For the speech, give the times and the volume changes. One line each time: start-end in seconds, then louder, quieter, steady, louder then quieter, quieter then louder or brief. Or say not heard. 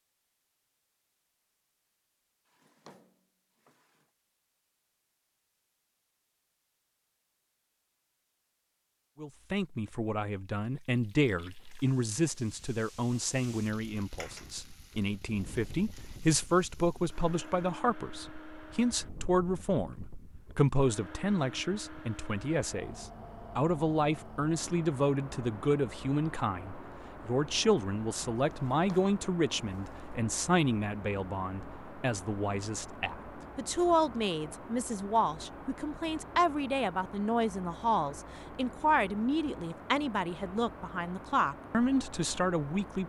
9.2-43.0 steady.